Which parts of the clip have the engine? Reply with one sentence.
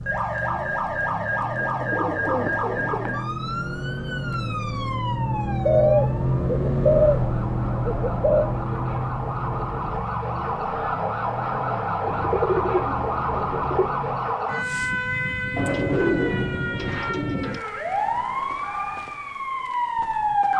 You can hear the engine from 0.0 to 14.4 s.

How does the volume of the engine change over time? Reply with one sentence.
The loudness of the engine goes up, then down.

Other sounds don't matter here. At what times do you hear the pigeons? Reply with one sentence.
The pigeons can be heard from 1.4 to 3.2 s, from 5.7 to 8.4 s, from 12.1 to 13.9 s and from 15.6 to 17.6 s.